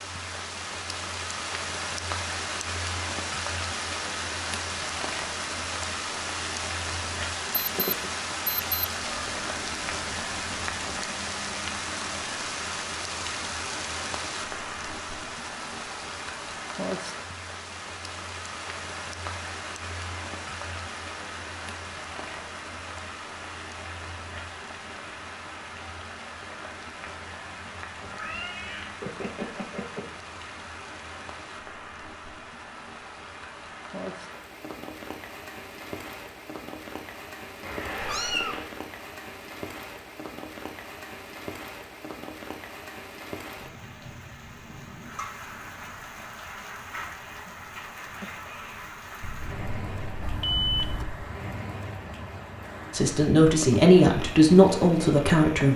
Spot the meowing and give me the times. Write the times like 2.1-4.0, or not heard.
9.0-11.0, 28.0-30.1, 37.6-38.7.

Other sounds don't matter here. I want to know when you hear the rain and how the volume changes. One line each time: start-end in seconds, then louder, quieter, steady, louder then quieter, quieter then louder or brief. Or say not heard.
0.0-55.7 quieter.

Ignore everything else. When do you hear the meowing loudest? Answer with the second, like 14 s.
38 s.